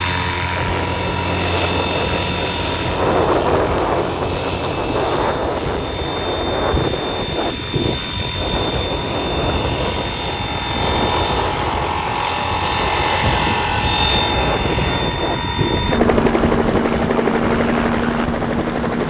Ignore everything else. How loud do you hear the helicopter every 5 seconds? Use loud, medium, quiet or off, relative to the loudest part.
medium, medium, loud, loud.